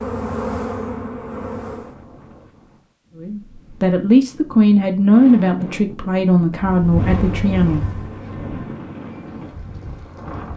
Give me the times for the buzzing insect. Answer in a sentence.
The buzzing insect can be heard from 0.0 to 1.9 s and from 6.6 to 10.5 s.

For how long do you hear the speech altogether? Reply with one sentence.
The speech can be heard for 5 seconds in total.